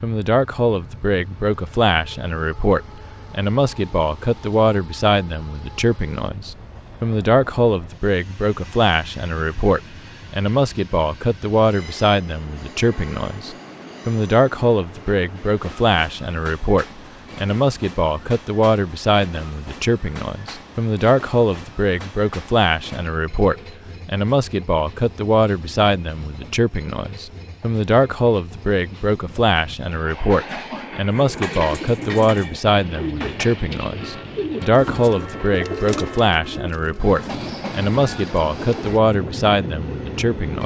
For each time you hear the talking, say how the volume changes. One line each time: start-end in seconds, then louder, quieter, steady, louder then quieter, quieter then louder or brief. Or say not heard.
0.0-40.6 steady.